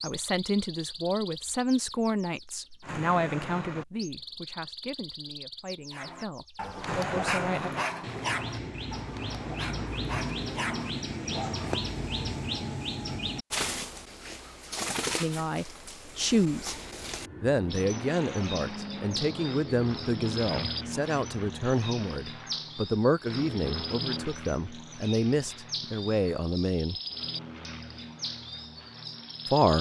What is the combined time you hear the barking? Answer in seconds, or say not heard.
6 s.